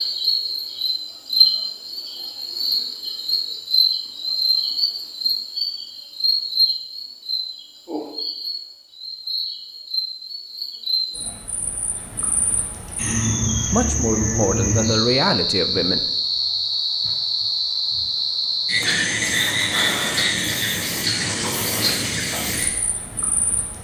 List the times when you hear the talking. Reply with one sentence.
The talking can be heard from 13.7 to 16.1 s.